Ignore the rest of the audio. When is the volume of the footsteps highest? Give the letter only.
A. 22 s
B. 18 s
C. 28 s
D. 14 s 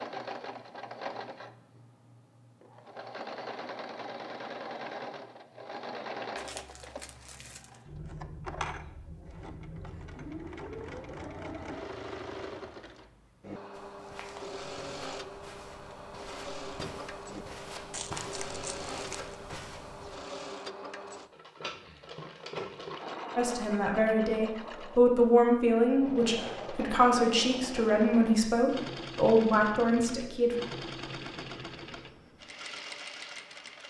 B.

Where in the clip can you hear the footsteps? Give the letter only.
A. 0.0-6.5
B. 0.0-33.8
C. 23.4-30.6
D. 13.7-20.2
D.